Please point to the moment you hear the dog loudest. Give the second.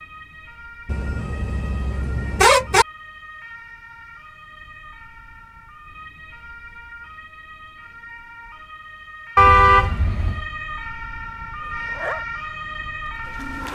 12 s.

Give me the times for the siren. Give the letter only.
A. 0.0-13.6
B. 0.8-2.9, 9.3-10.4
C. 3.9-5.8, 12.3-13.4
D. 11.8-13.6
A.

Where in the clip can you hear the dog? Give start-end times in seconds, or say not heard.
11.8-13.6.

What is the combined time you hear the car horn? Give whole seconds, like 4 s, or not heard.
3 s.